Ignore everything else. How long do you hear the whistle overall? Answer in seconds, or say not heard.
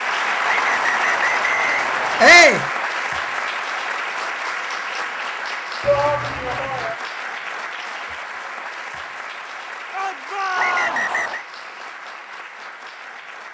3 s.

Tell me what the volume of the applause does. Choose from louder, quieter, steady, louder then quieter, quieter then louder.
quieter.